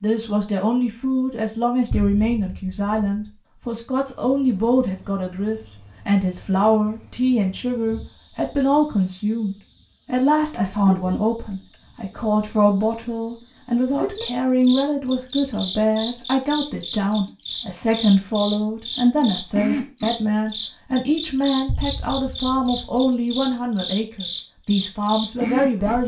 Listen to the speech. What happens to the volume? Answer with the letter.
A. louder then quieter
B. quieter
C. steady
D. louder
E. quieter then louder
C.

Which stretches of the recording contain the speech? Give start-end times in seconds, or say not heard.
0.0-26.0.